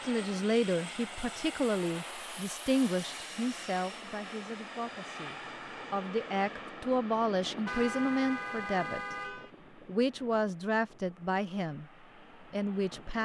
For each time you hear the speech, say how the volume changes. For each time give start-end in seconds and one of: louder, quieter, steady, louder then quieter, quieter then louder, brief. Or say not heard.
0.0-9.2 quieter then louder
9.8-11.8 brief
12.5-13.1 brief.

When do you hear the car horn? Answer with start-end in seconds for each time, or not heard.
7.7-9.5.